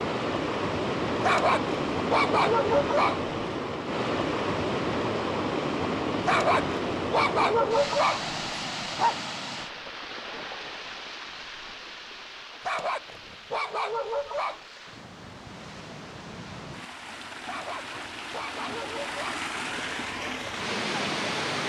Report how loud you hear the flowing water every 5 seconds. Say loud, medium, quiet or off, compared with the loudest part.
loud, loud, quiet, medium, loud.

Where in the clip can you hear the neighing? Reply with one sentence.
The neighing can't be heard in this clip.